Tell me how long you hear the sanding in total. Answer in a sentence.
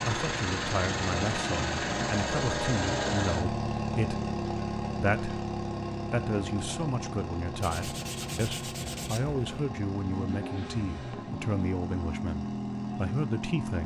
The sanding can be heard for 2 seconds in total.